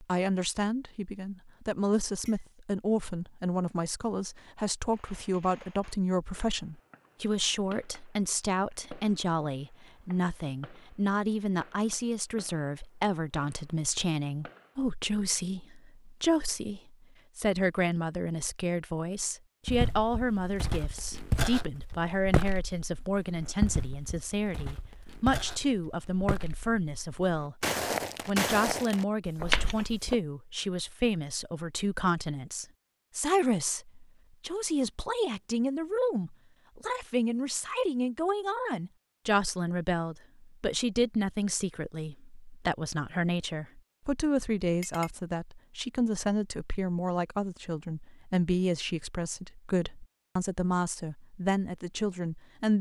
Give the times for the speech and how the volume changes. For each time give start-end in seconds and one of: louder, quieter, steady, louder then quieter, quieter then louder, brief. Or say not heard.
0.0-27.6 steady
28.2-52.7 steady.